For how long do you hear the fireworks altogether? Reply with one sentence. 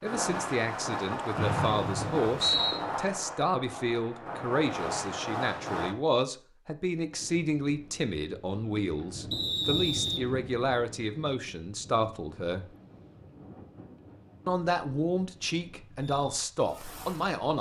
You can hear the fireworks for 7 seconds altogether.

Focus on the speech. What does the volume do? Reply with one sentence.
The loudness of the speech stays about the same.